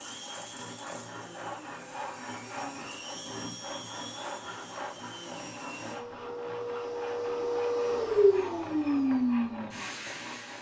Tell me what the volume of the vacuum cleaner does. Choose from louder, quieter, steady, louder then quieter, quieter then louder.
louder.